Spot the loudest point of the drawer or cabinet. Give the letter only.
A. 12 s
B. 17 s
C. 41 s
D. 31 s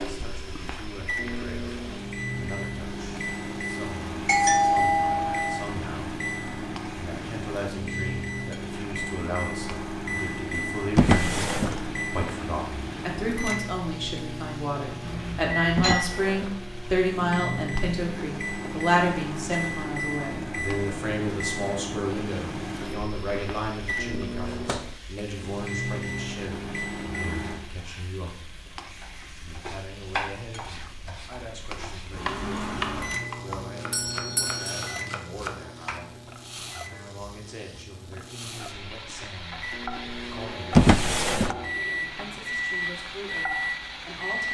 C.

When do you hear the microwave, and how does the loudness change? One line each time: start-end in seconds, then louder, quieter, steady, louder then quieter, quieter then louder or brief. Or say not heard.
0.0-27.6 steady
32.1-44.4 quieter then louder.